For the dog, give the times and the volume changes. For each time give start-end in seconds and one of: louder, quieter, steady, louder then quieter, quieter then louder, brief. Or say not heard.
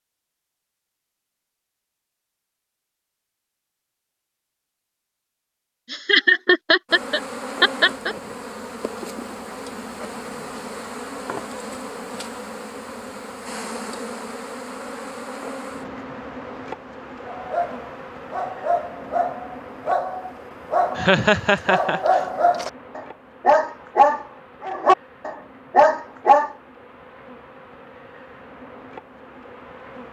17.2-26.6 louder.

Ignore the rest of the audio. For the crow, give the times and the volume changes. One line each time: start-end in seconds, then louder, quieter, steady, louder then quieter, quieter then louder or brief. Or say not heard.
not heard.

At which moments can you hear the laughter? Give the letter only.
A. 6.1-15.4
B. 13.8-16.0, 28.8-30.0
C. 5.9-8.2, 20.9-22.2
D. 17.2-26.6
C.